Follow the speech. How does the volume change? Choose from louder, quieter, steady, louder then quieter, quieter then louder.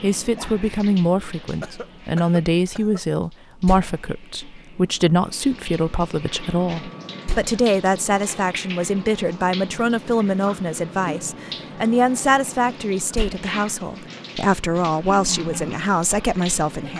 steady.